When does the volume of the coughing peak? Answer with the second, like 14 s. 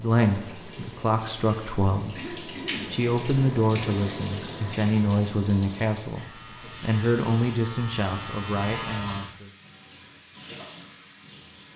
3 s.